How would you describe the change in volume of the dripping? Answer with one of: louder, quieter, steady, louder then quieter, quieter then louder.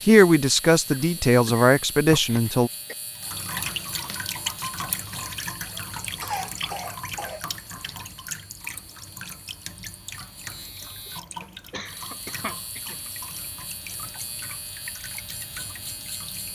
quieter.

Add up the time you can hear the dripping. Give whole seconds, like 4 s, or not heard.
13 s.